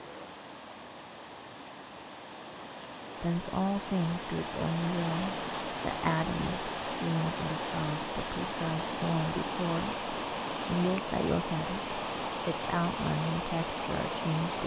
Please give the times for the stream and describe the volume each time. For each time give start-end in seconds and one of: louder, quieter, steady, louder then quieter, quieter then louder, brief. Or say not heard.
0.0-14.6 louder.